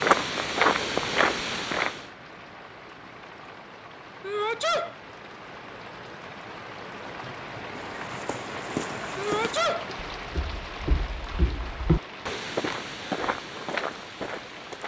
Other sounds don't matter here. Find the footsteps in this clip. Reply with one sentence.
You can hear the footsteps from 0.0 to 2.0 s and from 7.8 to 14.8 s.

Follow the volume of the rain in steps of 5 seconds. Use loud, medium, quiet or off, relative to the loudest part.
medium, loud, loud.